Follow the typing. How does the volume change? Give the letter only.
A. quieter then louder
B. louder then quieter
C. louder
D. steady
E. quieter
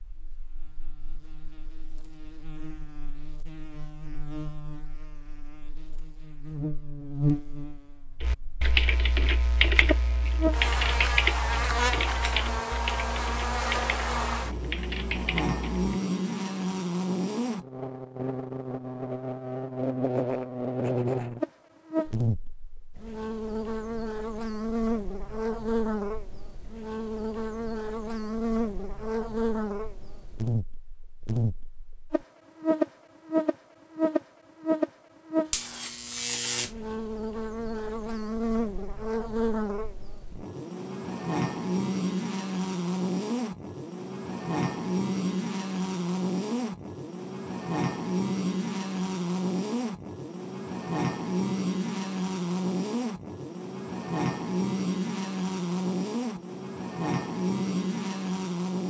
E.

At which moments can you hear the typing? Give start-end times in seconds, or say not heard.
8.2-15.8.